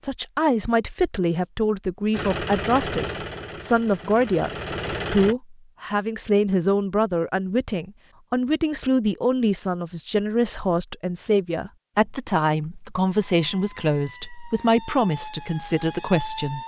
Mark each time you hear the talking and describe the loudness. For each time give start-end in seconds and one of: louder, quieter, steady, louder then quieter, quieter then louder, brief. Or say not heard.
0.1-16.6 steady.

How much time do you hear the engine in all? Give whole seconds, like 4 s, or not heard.
3 s.